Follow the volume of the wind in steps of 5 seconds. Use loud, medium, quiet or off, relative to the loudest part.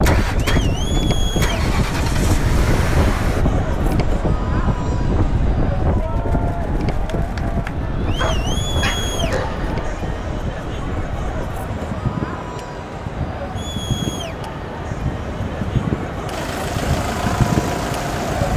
loud, loud, medium, loud.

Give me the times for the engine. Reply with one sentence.
The engine can be heard from 0.0 to 3.5 s and from 16.3 to 18.5 s.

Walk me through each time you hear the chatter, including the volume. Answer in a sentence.
The chatter can be heard from 0.1 to 18.5 s, at a steady volume.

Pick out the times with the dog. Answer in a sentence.
You can hear the dog from 8.2 to 9.8 s.